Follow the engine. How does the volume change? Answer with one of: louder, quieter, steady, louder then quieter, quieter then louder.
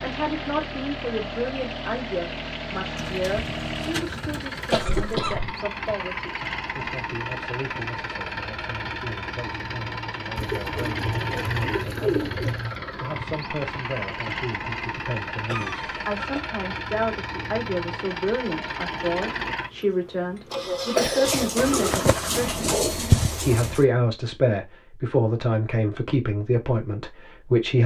steady.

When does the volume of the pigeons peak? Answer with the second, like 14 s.
23 s.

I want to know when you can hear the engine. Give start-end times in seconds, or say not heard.
0.0-23.9.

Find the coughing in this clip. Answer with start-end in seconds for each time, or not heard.
4.7-5.5, 15.4-16.5, 20.9-22.0.